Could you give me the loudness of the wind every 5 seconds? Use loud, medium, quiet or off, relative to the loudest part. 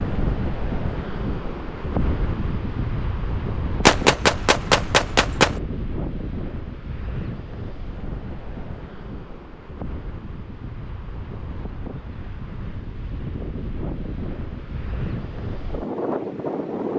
loud, medium, medium, loud.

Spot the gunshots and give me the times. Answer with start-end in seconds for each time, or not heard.
3.9-5.5.